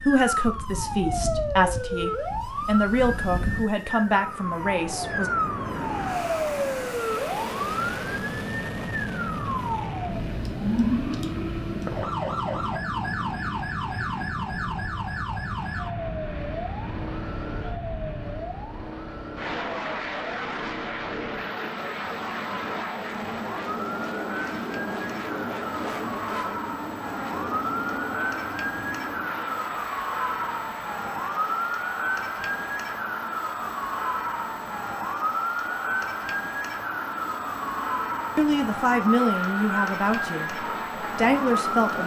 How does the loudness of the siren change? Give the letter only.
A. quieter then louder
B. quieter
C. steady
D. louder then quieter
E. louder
A.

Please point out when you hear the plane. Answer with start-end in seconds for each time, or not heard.
0.0-42.0.